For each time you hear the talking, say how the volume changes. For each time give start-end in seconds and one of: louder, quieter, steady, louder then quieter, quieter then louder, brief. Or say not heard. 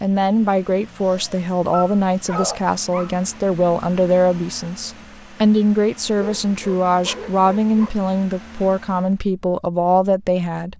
0.0-10.7 steady.